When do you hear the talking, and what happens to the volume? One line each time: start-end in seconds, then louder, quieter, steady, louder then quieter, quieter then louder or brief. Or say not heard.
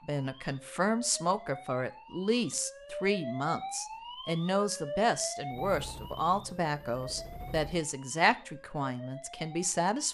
0.1-10.0 steady.